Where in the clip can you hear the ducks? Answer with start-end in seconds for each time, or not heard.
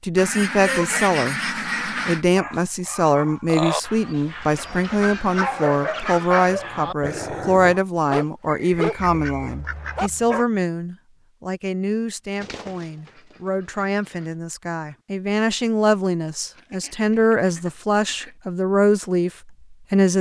0.1-2.2, 4.5-6.5, 8.9-10.4, 12.4-14.3, 16.4-18.4.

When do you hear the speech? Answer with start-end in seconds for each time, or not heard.
0.0-20.1.